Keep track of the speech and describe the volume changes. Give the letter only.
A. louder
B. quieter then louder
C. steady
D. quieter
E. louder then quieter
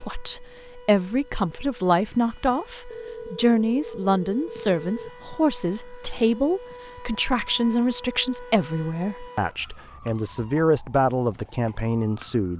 C.